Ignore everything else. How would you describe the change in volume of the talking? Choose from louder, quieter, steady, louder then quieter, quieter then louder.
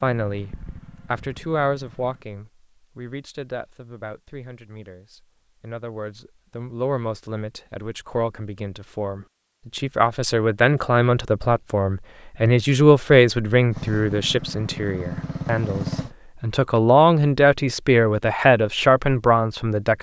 louder.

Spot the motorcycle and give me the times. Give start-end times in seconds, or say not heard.
0.1-2.2, 13.7-16.1.